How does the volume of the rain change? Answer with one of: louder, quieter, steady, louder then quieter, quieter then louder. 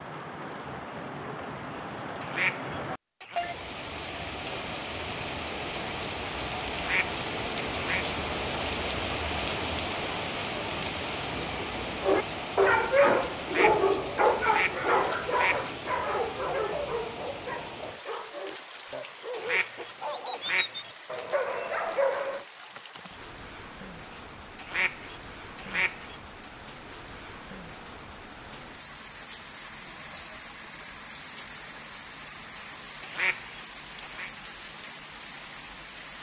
quieter.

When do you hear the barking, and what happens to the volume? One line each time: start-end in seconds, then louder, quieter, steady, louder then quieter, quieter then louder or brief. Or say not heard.
12.0-22.4 quieter then louder.